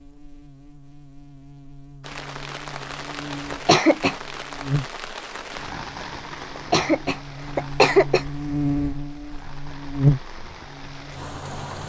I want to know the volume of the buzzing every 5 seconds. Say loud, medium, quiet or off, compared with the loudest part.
quiet, medium, loud.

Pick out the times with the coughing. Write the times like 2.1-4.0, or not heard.
3.5-4.2, 6.5-8.2.